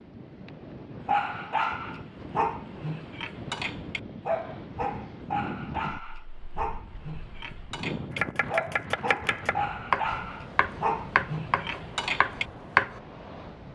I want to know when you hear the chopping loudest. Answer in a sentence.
The loudest moment of the chopping is at 13 seconds.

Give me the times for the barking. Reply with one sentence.
You can hear the barking from 1.1 to 12.4 s.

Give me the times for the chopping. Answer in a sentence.
The chopping can be heard from 8.2 to 13.0 s.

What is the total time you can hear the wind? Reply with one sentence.
The wind can be heard for 14 seconds in total.